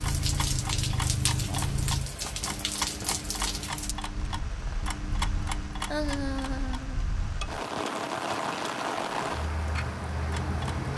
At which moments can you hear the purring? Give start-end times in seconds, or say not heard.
0.0-2.1.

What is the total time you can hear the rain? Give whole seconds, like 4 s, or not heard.
11 s.